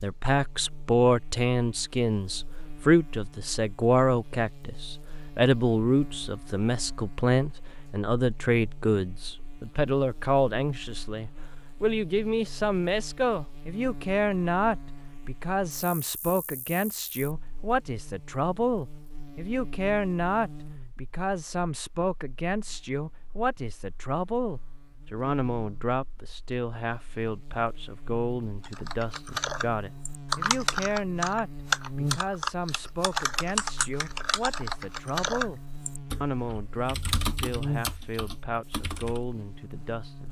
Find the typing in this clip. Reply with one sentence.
The typing can be heard from 28.6 to 39.2 s.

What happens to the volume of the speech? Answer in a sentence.
The volume of the speech goes down.